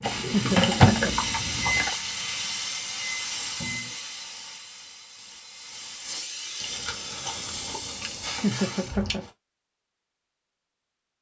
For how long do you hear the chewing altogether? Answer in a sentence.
The chewing can be heard for 5 seconds in total.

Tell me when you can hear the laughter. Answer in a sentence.
You can hear the laughter from 0.3 to 1.1 s and from 8.4 to 9.2 s.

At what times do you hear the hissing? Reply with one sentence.
You can hear the hissing from 0.0 to 9.2 s.